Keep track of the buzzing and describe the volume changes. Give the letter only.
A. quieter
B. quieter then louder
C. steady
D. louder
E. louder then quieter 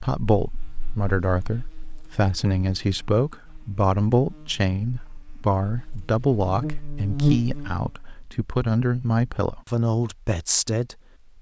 D.